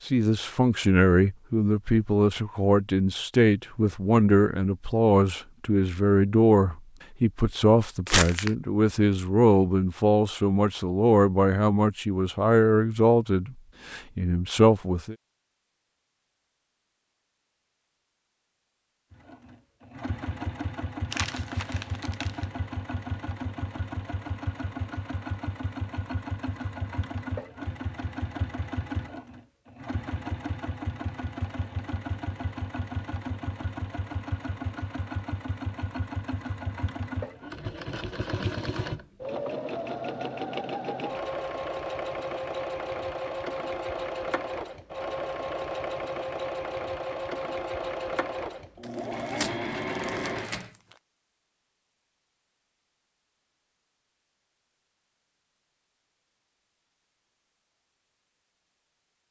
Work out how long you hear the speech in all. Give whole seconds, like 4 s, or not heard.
15 s.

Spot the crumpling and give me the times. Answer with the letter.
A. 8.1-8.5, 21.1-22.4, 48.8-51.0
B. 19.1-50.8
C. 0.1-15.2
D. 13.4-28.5
A.